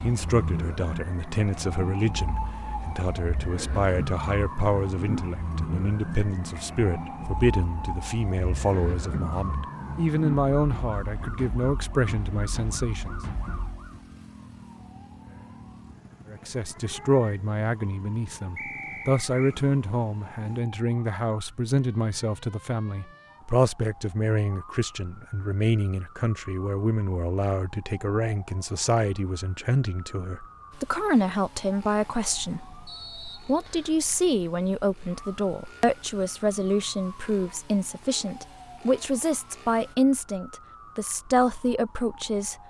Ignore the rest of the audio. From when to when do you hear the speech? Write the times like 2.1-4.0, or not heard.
0.0-13.2, 16.3-42.5.